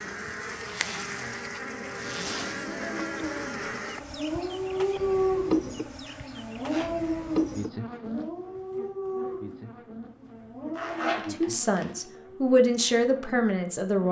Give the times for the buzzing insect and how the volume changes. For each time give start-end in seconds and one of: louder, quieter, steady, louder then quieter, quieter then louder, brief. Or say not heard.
0.0-14.0 quieter.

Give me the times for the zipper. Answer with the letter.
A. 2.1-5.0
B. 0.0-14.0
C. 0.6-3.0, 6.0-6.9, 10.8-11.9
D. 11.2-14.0
C.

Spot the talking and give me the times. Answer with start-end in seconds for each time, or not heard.
11.2-14.0.